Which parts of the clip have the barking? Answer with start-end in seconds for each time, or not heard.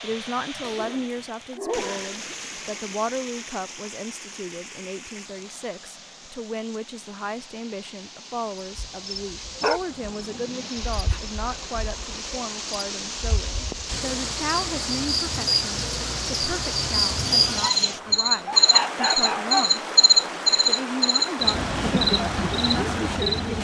0.6-2.1, 9.6-11.2, 17.6-19.8.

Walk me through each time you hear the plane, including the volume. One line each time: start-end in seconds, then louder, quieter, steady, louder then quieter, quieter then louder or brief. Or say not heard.
not heard.